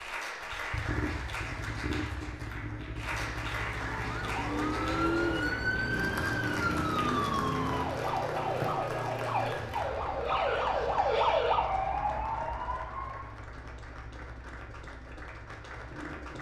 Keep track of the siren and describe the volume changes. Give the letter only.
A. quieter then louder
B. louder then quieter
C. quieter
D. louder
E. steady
E.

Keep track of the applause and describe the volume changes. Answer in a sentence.
The volume of the applause goes down.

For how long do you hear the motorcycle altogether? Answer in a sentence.
You can hear the motorcycle for 16 seconds altogether.